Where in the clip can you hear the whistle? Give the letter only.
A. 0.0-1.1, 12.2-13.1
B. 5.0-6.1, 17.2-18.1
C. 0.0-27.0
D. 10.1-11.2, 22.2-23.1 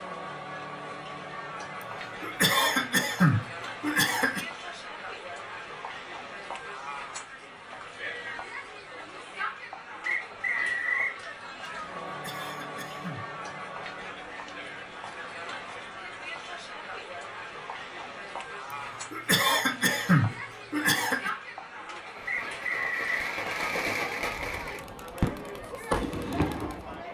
D.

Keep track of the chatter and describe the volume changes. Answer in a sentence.
The volume of the chatter stays about the same.